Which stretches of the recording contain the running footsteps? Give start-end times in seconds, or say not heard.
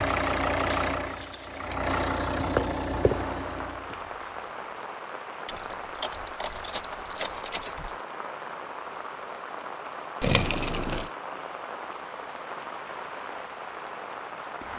not heard.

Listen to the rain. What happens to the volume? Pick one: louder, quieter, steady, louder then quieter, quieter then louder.
steady.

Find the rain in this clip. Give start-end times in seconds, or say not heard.
3.0-14.7.